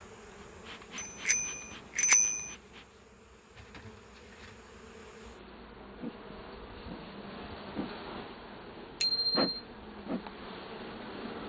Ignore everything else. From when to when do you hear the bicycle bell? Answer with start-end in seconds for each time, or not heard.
1.2-2.4, 9.0-9.4.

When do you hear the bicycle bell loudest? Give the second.
2 s.